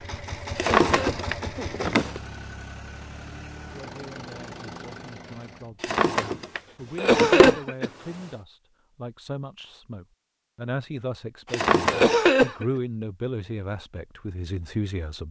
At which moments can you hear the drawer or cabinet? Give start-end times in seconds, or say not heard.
0.6-2.2, 5.8-8.3, 11.5-12.3.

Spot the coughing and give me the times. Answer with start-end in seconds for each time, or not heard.
0.6-1.9, 7.0-7.9, 11.9-12.7.